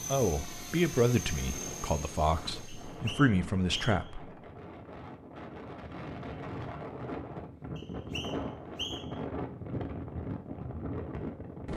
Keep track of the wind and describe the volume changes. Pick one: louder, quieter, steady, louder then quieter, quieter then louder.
louder.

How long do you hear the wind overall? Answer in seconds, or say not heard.
12 s.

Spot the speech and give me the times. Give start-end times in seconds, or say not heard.
0.1-4.3.